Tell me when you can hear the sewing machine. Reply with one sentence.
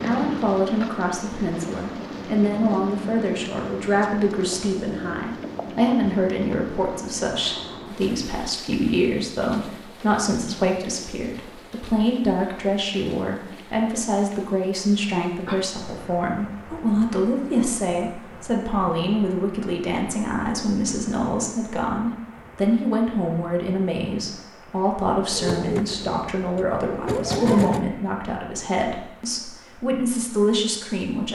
You can hear the sewing machine from 25.3 to 27.9 s.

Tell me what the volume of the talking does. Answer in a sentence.
The loudness of the talking stays about the same.